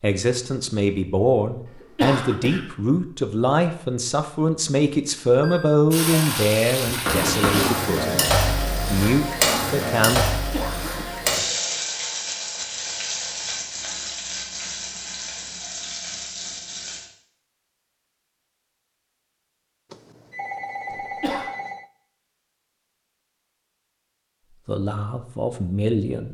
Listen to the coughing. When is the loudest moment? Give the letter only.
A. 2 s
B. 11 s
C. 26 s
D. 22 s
A.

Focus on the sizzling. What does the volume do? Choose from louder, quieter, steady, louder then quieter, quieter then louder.
quieter.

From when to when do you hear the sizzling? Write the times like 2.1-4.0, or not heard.
5.9-17.1.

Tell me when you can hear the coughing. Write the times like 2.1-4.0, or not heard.
1.6-2.6, 10.3-11.2, 20.9-21.5.